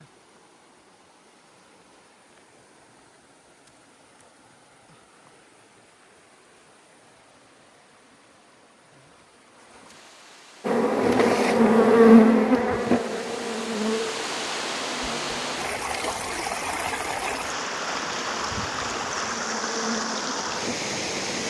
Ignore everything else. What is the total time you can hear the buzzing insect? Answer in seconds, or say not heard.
11 s.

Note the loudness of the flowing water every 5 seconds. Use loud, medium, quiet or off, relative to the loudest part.
quiet, quiet, medium, loud, loud.